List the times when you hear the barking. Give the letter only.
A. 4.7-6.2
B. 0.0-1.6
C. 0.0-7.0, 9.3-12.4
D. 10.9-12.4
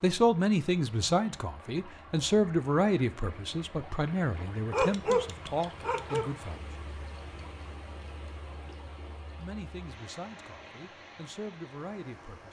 A.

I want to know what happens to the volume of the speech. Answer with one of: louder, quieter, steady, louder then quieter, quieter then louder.
quieter.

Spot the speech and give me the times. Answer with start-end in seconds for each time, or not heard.
0.0-7.0, 9.3-12.4.